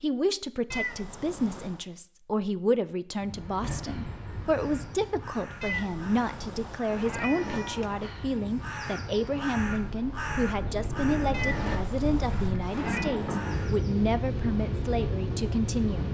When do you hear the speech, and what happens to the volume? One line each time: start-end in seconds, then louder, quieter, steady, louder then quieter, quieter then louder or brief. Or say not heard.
0.0-16.0 steady.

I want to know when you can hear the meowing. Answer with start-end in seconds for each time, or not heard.
0.7-1.9, 5.6-8.2, 11.3-13.2.